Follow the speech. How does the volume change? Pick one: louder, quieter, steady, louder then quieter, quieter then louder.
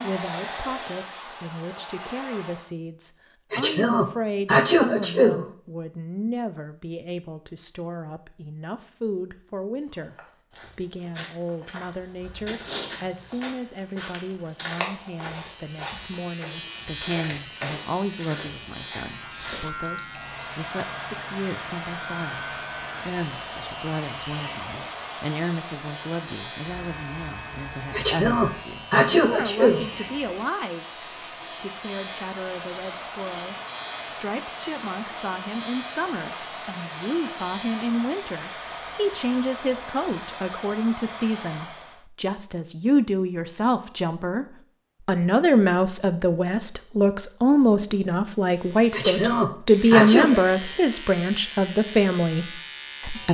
louder.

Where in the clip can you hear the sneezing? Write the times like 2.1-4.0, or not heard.
3.5-5.5, 27.9-29.9, 48.9-50.4.